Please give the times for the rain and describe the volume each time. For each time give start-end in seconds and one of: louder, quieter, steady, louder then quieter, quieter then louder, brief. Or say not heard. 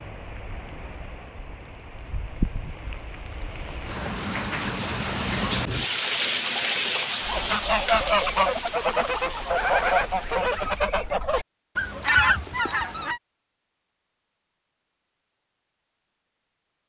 0.0-11.0 louder then quieter.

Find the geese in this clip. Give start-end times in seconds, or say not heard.
7.2-13.2.